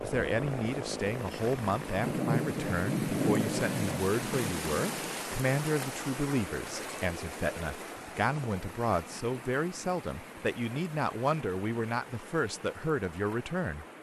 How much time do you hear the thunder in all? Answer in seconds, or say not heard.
3 s.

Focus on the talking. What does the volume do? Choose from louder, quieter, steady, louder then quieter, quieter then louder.
steady.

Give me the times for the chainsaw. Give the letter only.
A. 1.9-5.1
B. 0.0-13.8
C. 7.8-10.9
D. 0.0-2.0
D.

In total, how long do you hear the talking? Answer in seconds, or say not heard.
14 s.